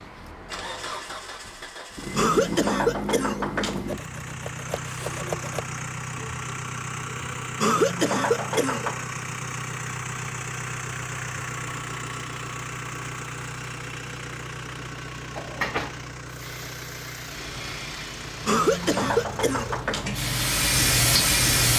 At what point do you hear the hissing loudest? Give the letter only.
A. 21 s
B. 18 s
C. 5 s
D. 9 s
A.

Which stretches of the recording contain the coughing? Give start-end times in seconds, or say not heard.
2.1-3.9, 7.6-8.9, 18.4-20.2.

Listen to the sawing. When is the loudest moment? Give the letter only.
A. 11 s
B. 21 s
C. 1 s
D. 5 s
D.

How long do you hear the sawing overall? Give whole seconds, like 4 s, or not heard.
2 s.